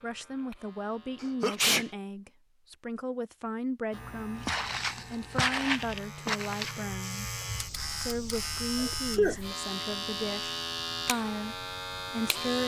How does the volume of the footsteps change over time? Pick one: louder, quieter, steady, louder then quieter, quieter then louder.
quieter.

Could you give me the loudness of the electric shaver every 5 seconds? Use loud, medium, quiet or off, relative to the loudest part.
quiet, loud, loud.